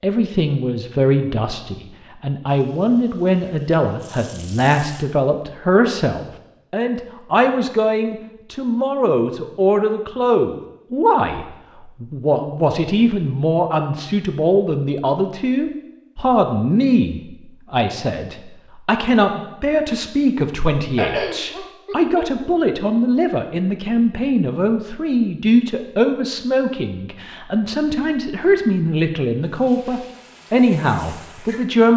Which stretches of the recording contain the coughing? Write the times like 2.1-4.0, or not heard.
20.9-22.2.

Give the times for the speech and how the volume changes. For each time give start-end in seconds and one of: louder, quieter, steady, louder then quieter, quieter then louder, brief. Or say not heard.
0.0-31.9 steady.